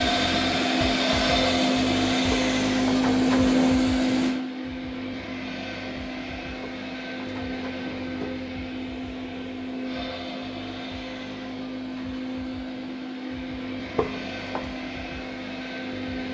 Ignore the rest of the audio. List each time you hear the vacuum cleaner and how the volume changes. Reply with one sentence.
The vacuum cleaner can be heard from 0.0 to 16.2 s, getting quieter.